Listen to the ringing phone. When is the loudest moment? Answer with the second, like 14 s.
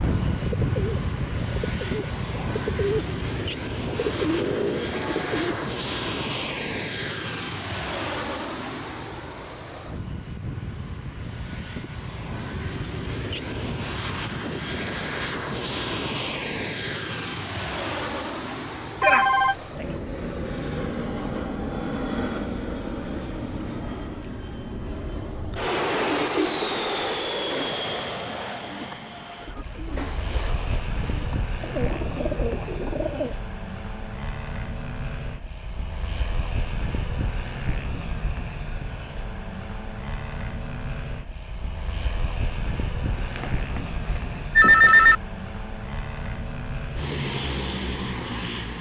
45 s.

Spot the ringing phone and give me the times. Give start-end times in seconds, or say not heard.
19.0-19.9, 43.4-45.1.